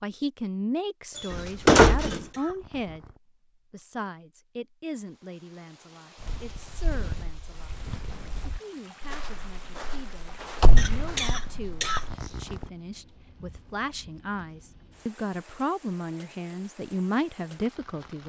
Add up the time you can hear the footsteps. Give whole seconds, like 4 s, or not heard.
6 s.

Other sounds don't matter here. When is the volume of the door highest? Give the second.
2 s.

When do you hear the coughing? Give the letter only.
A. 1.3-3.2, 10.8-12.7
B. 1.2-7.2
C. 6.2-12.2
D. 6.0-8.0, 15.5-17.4
A.